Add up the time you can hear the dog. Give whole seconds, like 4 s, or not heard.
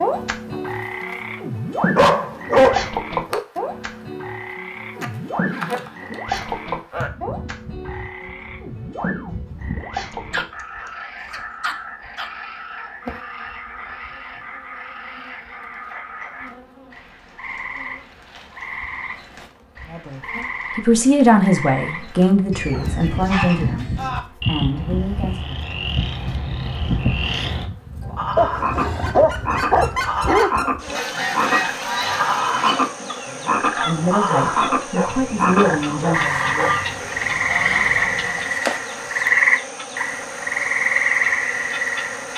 9 s.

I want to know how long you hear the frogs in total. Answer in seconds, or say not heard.
42 s.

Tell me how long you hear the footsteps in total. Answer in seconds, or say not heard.
not heard.